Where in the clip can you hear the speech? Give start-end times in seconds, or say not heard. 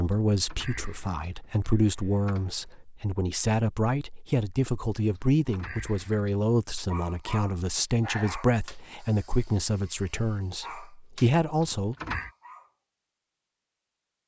0.0-11.9.